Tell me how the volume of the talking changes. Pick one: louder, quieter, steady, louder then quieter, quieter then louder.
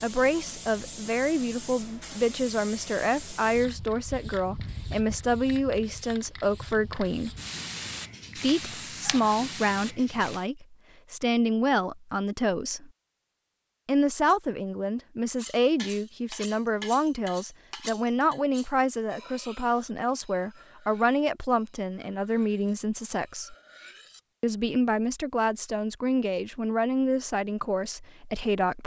steady.